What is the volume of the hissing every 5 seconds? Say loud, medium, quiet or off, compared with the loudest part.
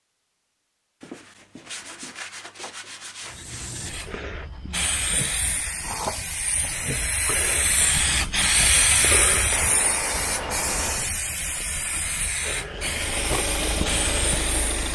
medium, loud, medium.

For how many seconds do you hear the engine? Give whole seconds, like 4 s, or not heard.
2 s.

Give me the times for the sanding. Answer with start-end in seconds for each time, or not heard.
1.0-3.9, 9.5-11.1.